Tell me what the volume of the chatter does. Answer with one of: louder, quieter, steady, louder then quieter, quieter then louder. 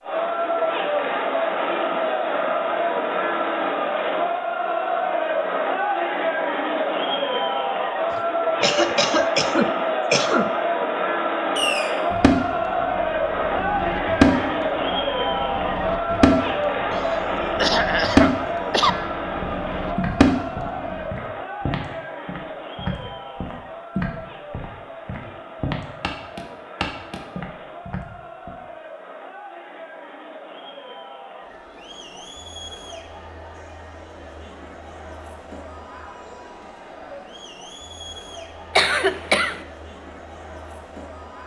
quieter.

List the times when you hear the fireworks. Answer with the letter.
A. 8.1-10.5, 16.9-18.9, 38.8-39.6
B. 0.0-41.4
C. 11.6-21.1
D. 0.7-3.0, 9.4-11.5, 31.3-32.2
C.